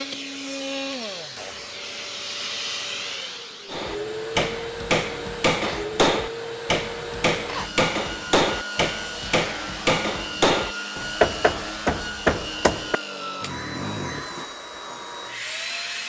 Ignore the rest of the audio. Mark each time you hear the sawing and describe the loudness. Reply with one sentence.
You can't hear the sawing here.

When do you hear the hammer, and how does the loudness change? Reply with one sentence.
You can hear the hammer from 3.7 to 13.0 s, at a steady volume.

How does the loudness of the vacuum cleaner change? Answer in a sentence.
The volume of the vacuum cleaner stays about the same.